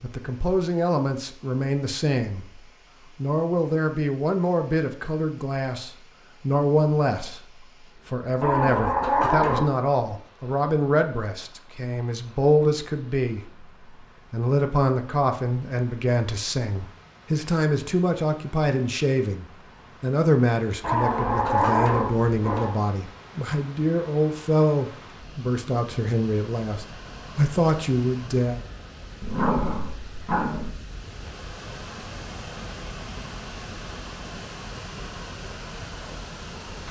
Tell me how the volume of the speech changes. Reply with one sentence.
The loudness of the speech stays about the same.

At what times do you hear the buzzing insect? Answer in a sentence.
You can't hear the buzzing insect here.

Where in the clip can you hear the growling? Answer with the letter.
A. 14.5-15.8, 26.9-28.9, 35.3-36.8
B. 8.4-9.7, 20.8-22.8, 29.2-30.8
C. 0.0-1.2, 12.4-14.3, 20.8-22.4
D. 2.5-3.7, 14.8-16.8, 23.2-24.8
B.